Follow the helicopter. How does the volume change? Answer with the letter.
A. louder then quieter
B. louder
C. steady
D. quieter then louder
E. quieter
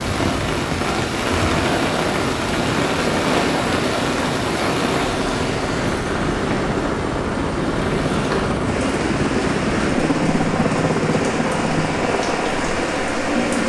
B.